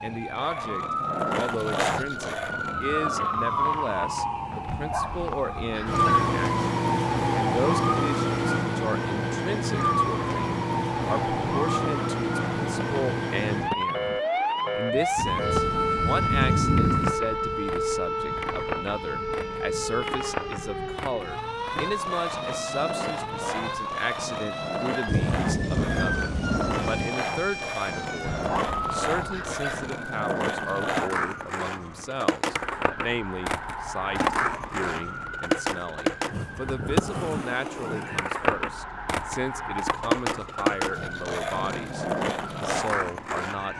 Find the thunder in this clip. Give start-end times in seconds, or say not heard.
15.2-17.1, 25.1-27.1.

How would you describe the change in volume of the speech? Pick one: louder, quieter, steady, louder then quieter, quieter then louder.
steady.